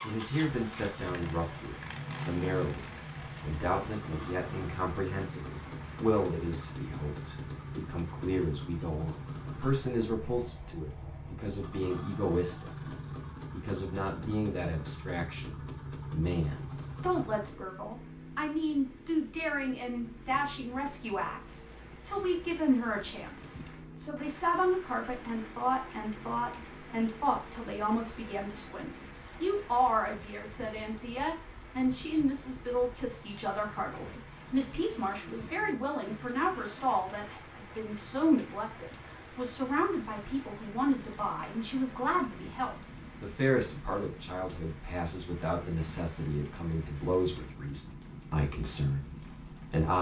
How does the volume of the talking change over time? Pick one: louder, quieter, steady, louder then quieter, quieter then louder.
steady.